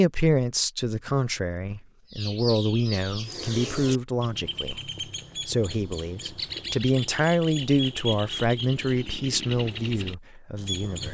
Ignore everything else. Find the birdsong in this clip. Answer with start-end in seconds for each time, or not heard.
2.1-11.0.